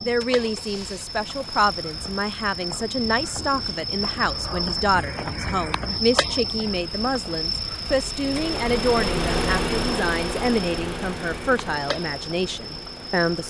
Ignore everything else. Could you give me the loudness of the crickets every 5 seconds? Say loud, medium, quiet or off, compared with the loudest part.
loud, loud, medium.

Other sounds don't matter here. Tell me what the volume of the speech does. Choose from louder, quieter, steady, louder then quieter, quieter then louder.
steady.